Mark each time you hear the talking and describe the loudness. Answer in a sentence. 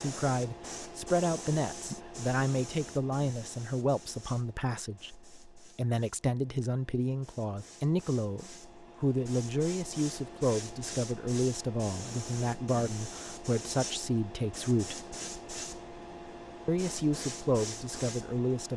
You can hear the talking from 0.0 to 14.9 s, at a steady volume; and briefly from 16.6 to 18.7 s.